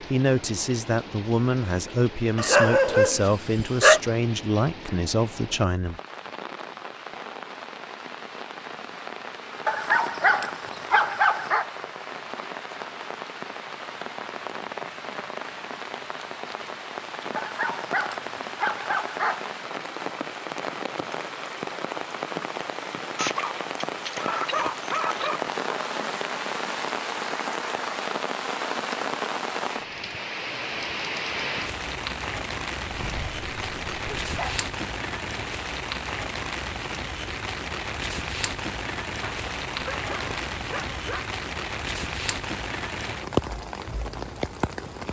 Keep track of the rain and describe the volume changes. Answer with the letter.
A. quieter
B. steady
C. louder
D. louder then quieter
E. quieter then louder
C.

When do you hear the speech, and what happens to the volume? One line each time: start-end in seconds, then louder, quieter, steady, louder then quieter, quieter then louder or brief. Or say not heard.
0.0-6.0 steady.